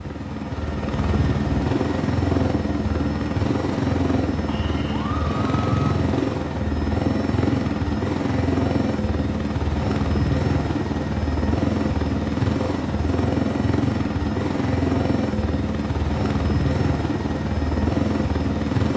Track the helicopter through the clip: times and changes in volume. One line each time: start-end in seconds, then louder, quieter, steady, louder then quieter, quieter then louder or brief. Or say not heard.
0.0-18.9 steady.